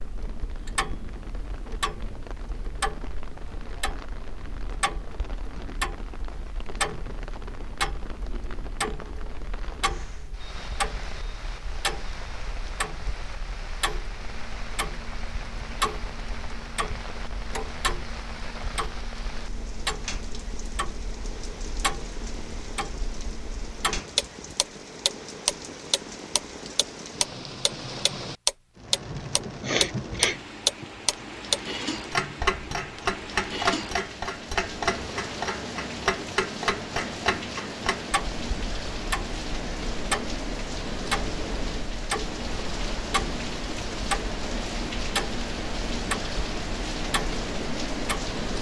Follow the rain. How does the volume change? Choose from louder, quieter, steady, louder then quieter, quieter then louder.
louder.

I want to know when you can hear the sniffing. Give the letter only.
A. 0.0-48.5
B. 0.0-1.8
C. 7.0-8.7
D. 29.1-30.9
D.